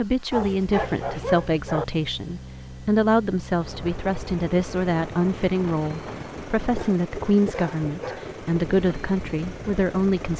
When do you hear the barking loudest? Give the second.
1 s.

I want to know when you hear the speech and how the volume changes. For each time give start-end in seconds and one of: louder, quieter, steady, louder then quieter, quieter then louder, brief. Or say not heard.
0.0-10.3 steady.